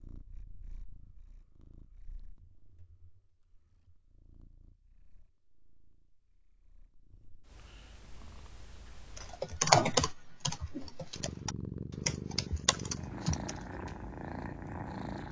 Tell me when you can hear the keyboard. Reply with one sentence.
You can hear the keyboard from 9.2 to 13.6 s.